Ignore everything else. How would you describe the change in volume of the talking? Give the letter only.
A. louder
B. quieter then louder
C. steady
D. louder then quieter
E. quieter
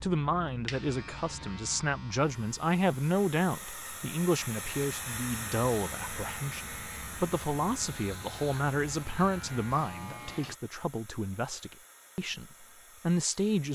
C.